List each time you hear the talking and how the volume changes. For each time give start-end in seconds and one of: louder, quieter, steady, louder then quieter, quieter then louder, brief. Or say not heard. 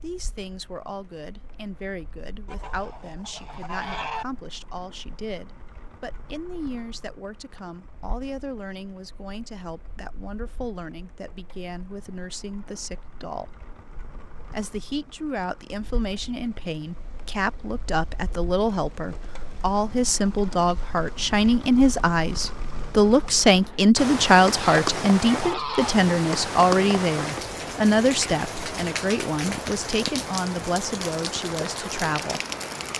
0.0-13.6 steady
14.5-32.4 louder then quieter.